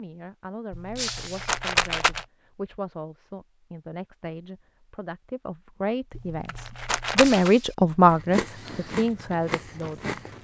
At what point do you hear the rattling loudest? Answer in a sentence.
The volume of the rattling peaks at 2 seconds.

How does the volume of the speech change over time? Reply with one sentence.
The volume of the speech goes up.